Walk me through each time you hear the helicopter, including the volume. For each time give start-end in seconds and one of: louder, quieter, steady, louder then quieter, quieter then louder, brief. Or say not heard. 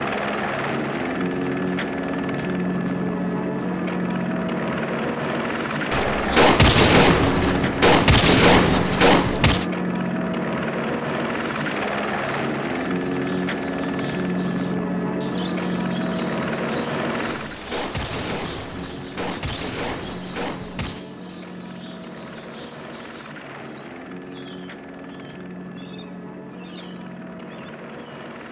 0.0-28.4 quieter.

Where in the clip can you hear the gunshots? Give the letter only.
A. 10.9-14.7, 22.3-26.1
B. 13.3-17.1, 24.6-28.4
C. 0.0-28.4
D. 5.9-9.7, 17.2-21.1
D.